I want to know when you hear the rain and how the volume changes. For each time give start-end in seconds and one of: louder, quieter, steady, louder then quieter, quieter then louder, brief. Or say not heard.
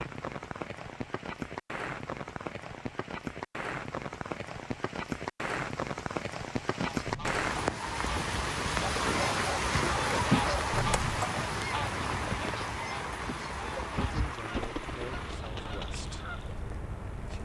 0.0-17.3 louder then quieter.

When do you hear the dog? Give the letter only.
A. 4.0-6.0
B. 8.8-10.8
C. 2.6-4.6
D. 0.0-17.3
B.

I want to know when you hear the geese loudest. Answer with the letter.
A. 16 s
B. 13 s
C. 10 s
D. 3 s
C.